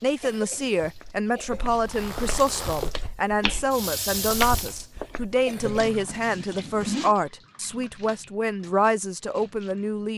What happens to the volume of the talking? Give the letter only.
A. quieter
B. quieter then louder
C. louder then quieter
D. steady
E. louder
D.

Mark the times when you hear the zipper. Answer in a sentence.
You can hear the zipper from 1.6 to 2.9 s and from 6.0 to 7.2 s.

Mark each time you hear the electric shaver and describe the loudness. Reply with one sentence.
The electric shaver can't be heard in this clip.